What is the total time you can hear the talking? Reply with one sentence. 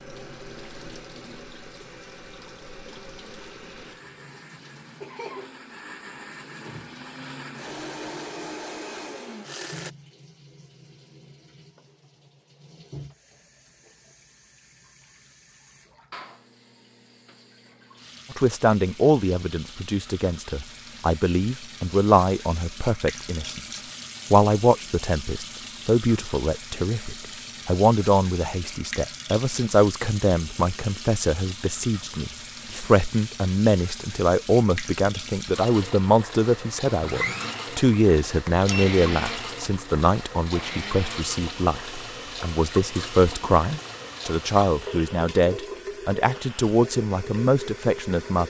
You can hear the talking for 30 seconds altogether.